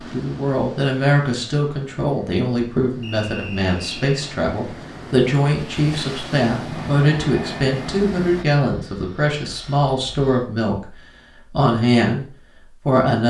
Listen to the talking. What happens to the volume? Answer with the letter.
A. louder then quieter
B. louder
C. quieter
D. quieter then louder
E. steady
E.